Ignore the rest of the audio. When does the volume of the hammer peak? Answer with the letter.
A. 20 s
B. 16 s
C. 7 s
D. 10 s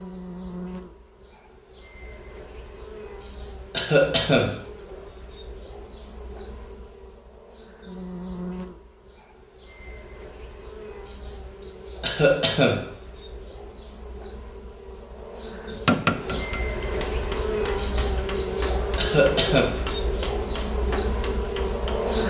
B.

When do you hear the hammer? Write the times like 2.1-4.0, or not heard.
15.7-21.9.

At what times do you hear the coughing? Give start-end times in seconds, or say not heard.
3.7-4.6, 12.0-12.8, 18.9-19.7.